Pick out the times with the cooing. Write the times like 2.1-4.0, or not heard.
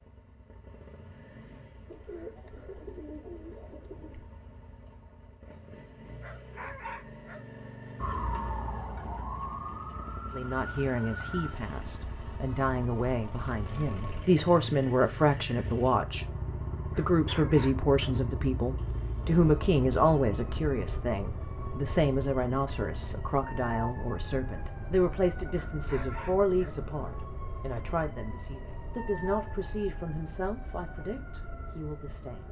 1.9-4.2.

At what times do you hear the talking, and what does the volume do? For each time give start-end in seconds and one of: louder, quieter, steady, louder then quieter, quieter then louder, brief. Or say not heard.
10.3-16.2 louder
16.9-32.4 quieter.